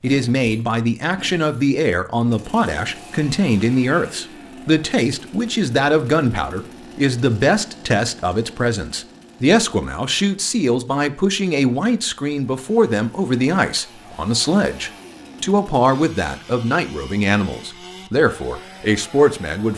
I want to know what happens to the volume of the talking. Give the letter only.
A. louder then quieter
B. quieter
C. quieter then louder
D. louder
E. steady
E.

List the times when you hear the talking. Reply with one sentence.
The talking can be heard from 0.0 to 19.7 s.